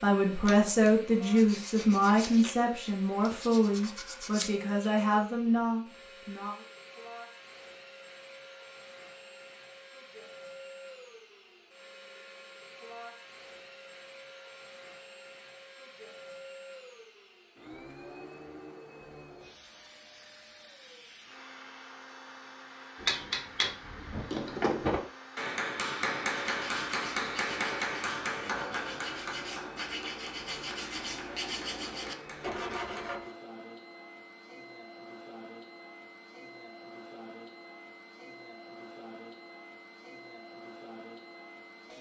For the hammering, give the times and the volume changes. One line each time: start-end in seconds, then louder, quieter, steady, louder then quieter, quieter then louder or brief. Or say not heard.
23.0-33.1 quieter.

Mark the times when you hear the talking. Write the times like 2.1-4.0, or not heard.
0.0-6.6.